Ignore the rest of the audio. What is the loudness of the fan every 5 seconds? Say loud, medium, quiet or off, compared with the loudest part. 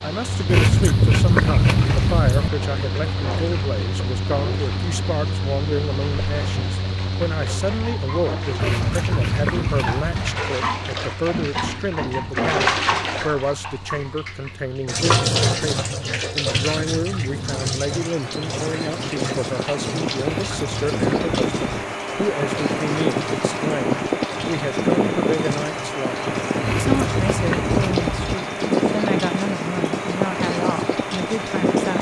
medium, medium, quiet, medium, loud, loud, loud.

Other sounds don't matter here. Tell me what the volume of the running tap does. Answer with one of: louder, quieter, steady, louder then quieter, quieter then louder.
louder then quieter.